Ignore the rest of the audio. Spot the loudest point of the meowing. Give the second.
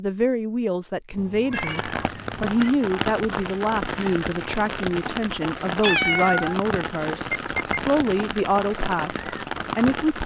6 s.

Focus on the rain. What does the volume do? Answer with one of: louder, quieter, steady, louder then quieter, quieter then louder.
steady.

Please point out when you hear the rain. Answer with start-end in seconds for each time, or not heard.
1.6-10.2.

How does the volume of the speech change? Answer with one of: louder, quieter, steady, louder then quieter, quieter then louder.
steady.